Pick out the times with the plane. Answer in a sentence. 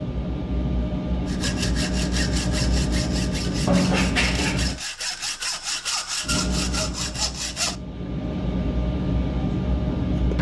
The plane can be heard from 0.0 to 4.8 s and from 6.2 to 10.3 s.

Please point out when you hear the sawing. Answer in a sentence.
The sawing can be heard from 1.2 to 7.8 s.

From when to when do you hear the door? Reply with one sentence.
You can hear the door from 3.6 to 4.7 s.